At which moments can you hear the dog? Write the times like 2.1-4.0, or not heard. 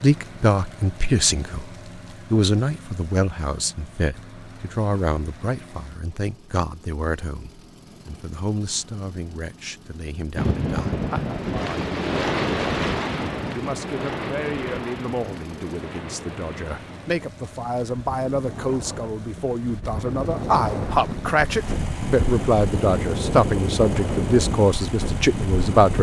not heard.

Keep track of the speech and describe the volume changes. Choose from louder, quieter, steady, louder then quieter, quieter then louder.
quieter then louder.